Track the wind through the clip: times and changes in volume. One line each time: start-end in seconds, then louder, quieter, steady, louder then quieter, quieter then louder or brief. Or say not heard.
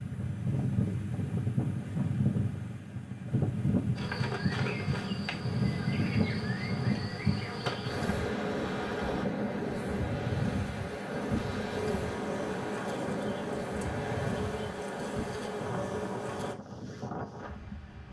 0.0-18.0 quieter.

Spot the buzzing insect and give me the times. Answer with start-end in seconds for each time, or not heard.
4.0-9.2, 11.3-16.6.